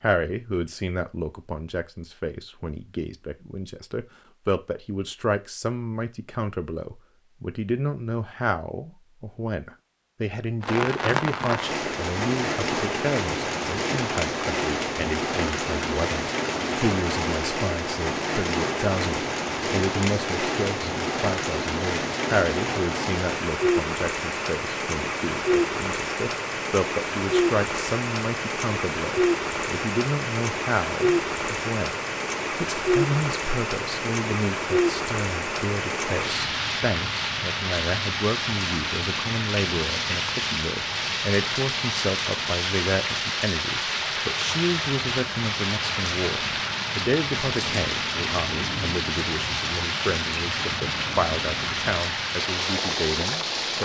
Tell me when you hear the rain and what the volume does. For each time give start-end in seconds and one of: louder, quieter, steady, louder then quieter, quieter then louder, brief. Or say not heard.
10.6-53.8 steady.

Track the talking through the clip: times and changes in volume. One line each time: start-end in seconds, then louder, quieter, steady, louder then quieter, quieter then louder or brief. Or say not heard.
0.0-53.8 steady.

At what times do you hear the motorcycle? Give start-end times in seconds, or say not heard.
not heard.